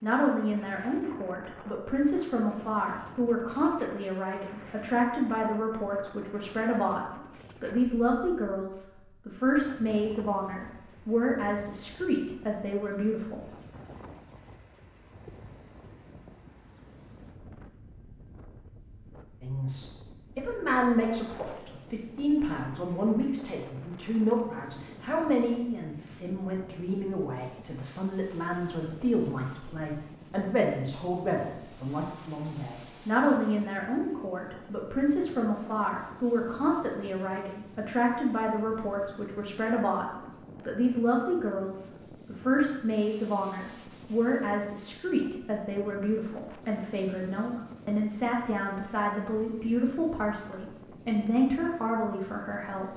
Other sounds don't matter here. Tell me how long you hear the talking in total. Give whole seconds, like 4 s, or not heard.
47 s.